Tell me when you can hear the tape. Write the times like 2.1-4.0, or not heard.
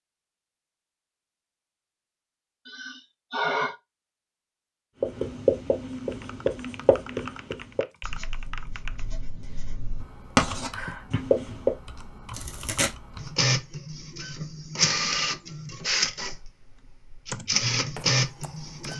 12.3-12.9.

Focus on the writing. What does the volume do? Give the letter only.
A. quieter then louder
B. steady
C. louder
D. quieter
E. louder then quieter
A.